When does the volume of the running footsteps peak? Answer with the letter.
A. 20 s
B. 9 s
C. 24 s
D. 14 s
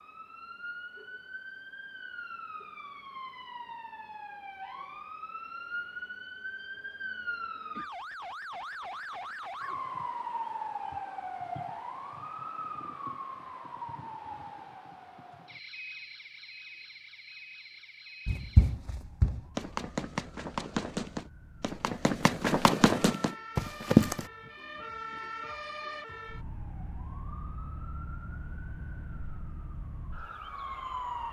C.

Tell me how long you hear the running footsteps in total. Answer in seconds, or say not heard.
6 s.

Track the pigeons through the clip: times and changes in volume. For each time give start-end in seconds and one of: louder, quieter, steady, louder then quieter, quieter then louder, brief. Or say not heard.
not heard.